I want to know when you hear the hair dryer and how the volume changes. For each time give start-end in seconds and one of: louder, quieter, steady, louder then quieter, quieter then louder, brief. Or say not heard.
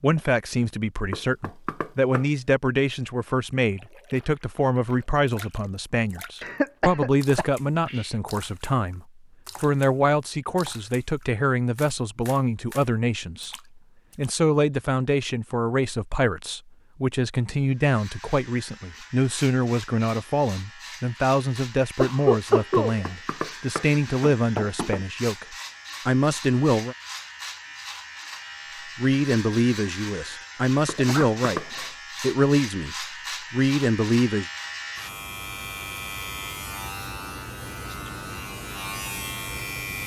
not heard.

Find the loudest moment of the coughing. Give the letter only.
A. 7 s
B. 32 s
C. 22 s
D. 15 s
C.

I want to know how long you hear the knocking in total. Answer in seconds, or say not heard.
4 s.